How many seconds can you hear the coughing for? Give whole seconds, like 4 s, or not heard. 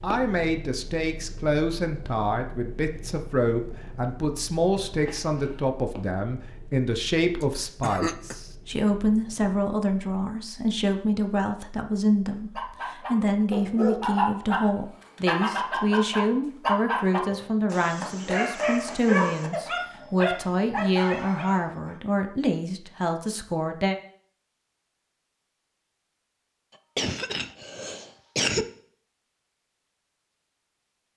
3 s.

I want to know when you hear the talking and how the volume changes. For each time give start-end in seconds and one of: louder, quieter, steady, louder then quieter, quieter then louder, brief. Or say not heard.
0.0-23.9 steady.